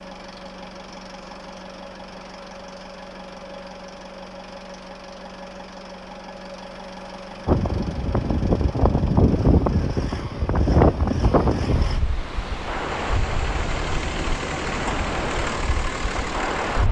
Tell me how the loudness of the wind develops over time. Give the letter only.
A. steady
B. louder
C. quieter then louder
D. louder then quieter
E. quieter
E.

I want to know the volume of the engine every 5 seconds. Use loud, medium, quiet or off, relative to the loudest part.
medium, medium, loud, loud.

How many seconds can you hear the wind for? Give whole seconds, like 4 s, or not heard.
9 s.